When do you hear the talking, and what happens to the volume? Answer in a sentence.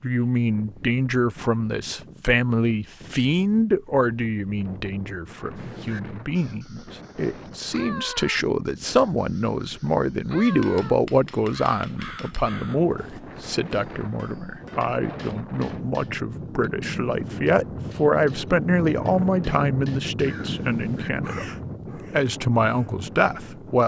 You can hear the talking from 0.0 to 23.8 s, at a steady volume.